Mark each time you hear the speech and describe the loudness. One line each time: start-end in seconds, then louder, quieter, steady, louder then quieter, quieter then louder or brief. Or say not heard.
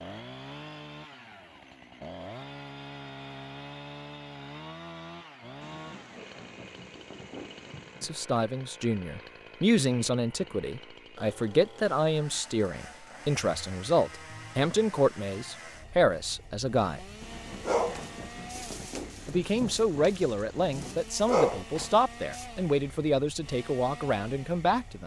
8.0-17.1 steady
19.2-25.0 steady.